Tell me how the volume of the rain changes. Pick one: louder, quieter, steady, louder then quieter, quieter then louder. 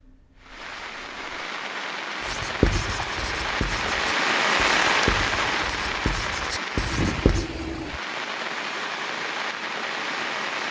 louder then quieter.